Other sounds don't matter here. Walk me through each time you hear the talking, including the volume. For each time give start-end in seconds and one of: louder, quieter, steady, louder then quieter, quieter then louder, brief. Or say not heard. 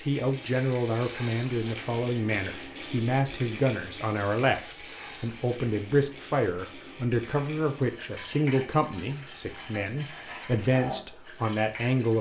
0.0-12.1 steady.